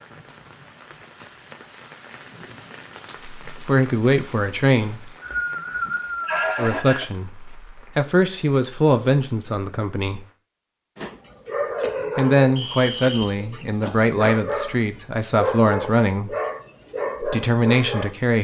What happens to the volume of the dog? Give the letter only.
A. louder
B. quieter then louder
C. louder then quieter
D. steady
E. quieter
B.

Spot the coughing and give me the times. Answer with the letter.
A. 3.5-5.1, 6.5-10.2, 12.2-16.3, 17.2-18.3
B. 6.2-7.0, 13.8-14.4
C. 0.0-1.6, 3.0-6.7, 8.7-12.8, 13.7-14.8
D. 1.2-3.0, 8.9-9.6
B.